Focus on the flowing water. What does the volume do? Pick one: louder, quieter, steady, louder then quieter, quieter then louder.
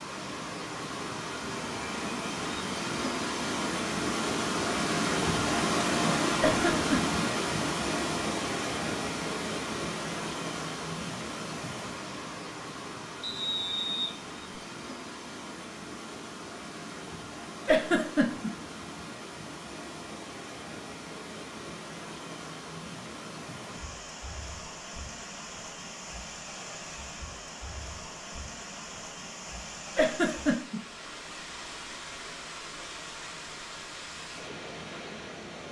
quieter.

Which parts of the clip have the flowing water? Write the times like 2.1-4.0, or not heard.
0.0-35.6.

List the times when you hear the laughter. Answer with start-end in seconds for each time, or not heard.
6.4-7.2, 17.6-18.5, 29.9-30.8.